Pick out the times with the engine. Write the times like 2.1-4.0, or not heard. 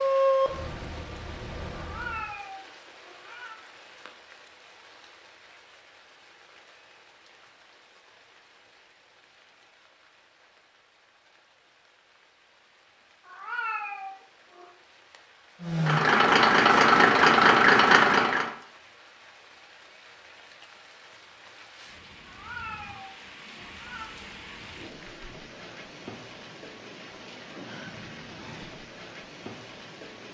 0.0-2.4, 15.6-18.5.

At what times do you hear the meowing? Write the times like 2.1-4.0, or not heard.
1.8-3.6, 13.2-14.7, 22.2-24.1.